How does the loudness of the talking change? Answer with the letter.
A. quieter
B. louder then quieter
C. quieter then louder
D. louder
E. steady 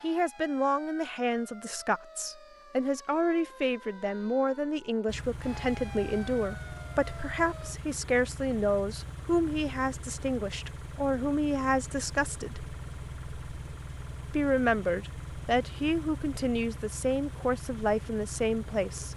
E.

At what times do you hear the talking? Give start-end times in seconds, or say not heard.
0.0-12.7, 14.3-19.1.